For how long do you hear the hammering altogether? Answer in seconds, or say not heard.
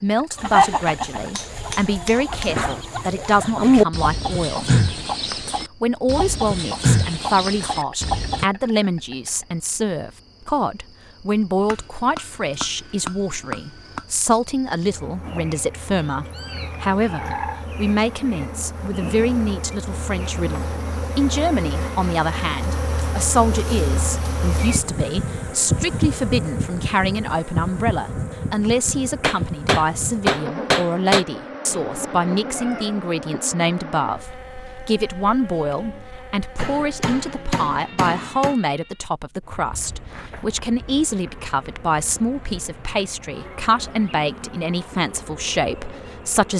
8 s.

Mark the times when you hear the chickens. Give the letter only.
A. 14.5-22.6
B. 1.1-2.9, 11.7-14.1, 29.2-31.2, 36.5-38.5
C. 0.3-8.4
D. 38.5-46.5
C.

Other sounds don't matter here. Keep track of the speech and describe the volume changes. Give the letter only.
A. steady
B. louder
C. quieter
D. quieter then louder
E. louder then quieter
A.